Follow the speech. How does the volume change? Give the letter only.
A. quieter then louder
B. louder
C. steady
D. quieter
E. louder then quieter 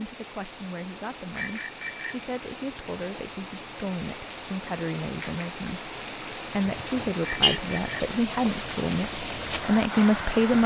B.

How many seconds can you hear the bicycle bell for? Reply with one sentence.
You can hear the bicycle bell for 2 seconds altogether.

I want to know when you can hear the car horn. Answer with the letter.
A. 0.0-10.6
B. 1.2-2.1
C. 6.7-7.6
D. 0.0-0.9
C.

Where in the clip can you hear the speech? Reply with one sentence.
The speech can be heard from 0.0 to 10.6 s.